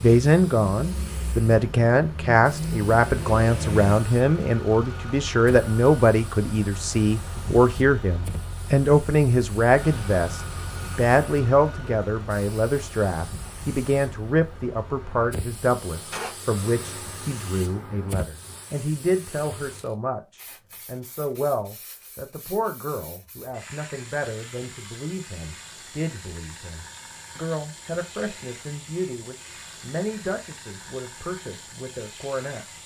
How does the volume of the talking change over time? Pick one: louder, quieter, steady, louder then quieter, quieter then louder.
quieter.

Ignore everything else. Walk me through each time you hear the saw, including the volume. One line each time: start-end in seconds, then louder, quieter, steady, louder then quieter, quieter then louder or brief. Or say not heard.
not heard.